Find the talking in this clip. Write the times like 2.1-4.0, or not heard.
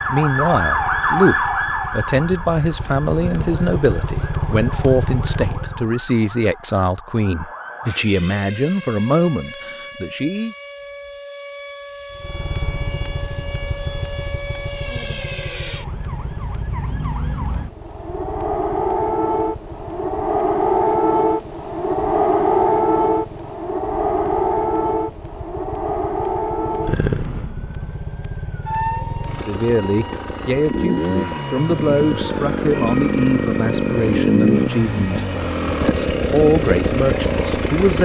0.1-10.6, 29.4-37.9.